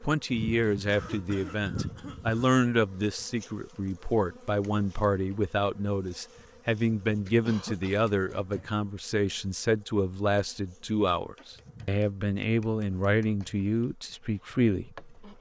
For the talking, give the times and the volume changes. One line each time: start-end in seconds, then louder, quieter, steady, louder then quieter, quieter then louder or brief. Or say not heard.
0.0-15.3 steady.